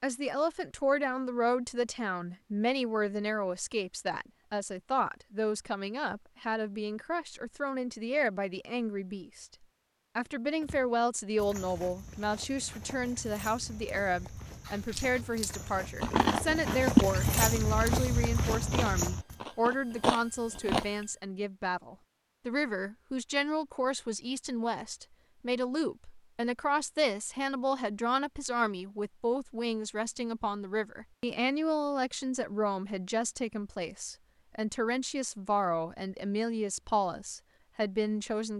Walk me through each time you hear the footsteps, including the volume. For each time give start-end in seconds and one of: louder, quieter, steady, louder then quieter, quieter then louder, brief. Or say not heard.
10.6-19.4 louder.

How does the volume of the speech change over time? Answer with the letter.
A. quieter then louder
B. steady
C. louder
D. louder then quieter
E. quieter
B.